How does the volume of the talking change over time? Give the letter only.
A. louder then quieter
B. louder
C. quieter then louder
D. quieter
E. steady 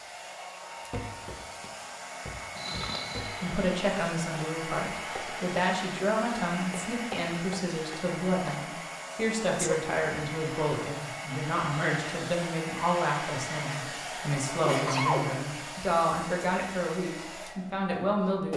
E.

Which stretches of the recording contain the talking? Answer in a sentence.
You can hear the talking from 3.4 to 18.5 s.